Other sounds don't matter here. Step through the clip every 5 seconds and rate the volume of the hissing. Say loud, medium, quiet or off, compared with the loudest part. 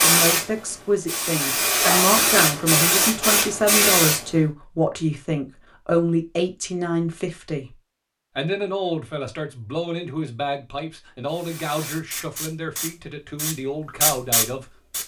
loud, off, medium.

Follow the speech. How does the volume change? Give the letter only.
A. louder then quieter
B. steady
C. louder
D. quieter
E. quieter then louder
D.